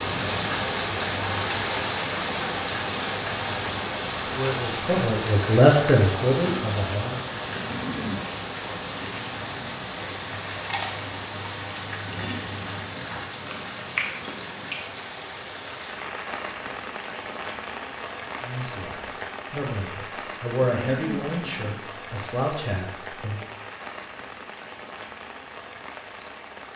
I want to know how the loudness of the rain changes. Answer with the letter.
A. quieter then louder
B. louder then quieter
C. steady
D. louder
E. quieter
E.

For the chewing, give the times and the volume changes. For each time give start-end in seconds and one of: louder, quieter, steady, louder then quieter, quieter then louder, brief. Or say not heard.
10.5-14.8 louder.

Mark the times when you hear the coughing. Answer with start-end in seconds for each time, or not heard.
7.5-8.2, 20.6-21.8.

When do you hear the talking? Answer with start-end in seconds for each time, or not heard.
4.3-7.2, 18.4-23.4.